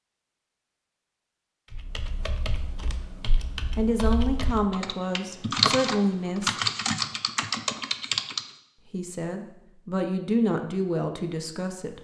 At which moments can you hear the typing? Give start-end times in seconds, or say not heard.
1.7-8.4.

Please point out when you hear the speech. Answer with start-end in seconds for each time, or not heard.
3.8-6.5, 8.9-11.9.